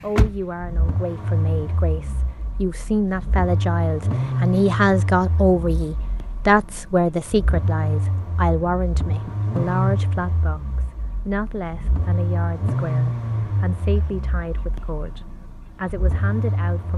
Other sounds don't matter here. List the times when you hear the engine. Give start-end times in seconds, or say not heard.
0.0-16.9.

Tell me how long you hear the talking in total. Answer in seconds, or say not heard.
17 s.